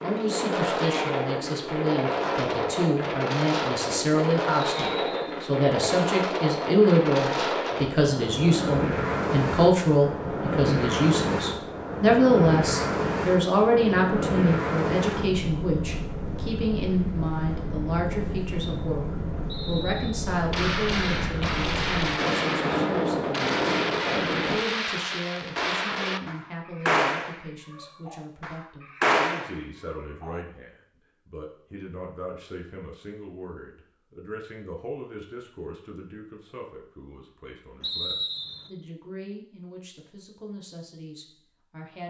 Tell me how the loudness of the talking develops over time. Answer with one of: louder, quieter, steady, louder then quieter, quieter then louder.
quieter.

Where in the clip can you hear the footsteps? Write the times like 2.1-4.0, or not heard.
not heard.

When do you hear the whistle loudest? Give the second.
38 s.